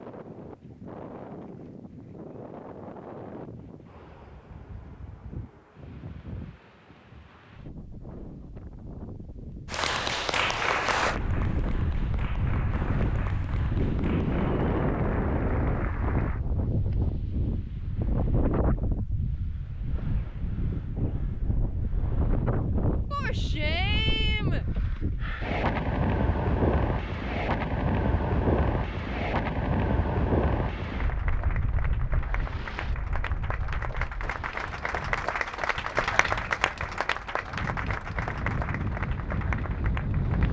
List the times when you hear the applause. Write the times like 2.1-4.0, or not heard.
9.7-16.4, 30.9-40.4.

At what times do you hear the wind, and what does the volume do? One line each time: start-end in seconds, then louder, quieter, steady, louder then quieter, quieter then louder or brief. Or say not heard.
0.0-40.4 louder then quieter.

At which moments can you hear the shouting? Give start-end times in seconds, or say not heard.
23.1-24.6.